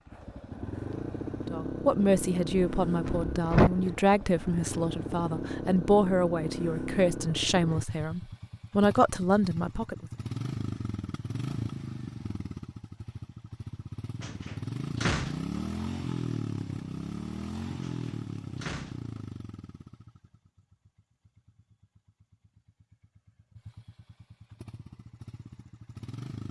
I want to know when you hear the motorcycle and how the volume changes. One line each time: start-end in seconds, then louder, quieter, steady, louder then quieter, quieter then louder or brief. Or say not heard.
0.1-26.4 quieter.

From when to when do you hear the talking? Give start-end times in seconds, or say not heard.
1.4-10.1.